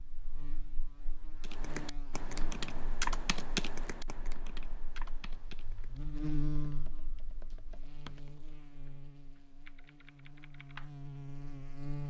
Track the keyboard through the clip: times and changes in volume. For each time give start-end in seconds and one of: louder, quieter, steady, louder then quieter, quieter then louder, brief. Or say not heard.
1.4-10.9 quieter.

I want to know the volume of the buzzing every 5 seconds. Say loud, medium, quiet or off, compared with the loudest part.
medium, loud, loud.